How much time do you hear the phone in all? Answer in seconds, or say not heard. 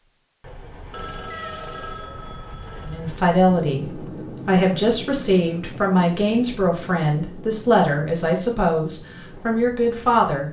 2 s.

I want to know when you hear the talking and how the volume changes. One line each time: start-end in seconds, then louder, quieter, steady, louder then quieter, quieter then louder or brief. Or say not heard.
2.9-10.4 steady.